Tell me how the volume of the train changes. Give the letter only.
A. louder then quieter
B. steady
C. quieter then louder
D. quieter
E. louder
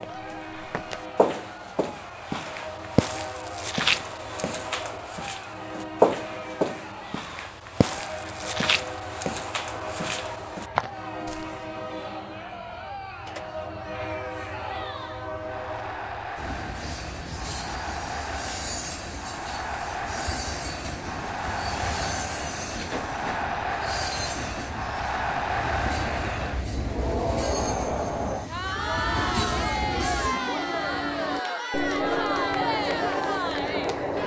E.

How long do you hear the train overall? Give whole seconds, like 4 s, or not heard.
34 s.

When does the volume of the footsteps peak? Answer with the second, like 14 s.
6 s.